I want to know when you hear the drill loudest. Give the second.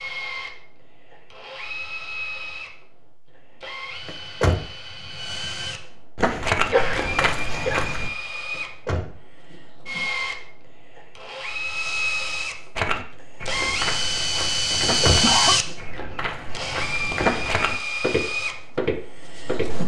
15 s.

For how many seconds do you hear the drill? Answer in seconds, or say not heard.
20 s.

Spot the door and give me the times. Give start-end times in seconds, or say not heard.
4.0-4.7, 8.5-9.6, 14.7-15.8.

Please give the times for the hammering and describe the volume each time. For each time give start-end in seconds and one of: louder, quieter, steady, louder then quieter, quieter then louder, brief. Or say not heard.
not heard.